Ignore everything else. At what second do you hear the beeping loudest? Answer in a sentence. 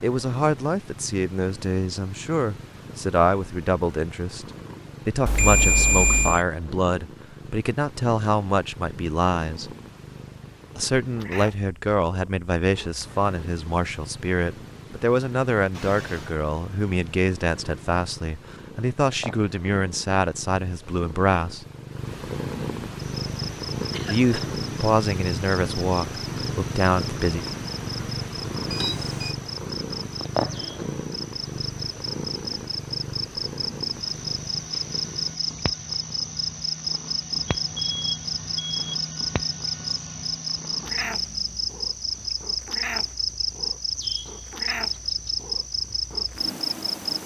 The volume of the beeping peaks at 6 seconds.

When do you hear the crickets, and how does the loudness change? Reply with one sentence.
You can hear the crickets from 23.0 to 47.2 s, getting louder.